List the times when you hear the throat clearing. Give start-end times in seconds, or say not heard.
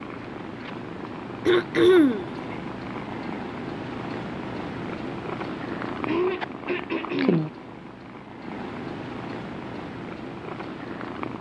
1.4-2.3, 6.0-7.5.